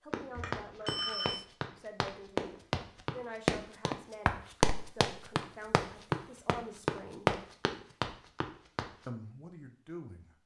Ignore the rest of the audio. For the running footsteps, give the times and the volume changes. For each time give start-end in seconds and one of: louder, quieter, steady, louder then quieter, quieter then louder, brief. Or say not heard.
0.1-9.1 louder.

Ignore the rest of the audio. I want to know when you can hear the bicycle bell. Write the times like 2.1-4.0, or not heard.
0.3-1.4.